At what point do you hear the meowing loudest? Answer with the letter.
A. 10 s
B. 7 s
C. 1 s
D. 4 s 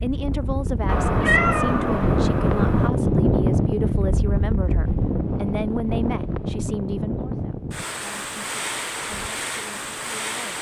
C.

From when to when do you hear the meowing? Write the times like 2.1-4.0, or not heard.
0.8-2.9.